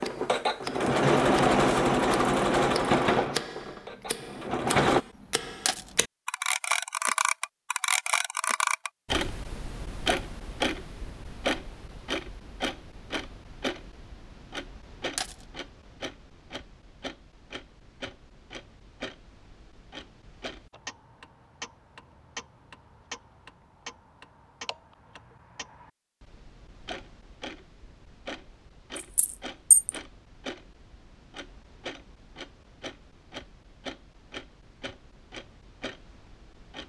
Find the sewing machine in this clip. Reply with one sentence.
The sewing machine can be heard from 0.0 to 5.0 s.